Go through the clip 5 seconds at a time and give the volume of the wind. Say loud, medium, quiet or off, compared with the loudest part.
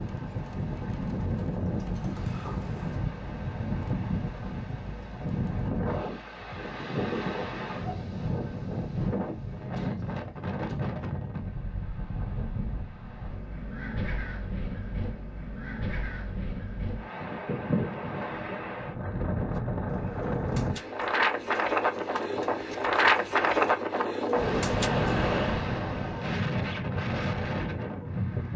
medium, medium, medium, medium, loud, loud.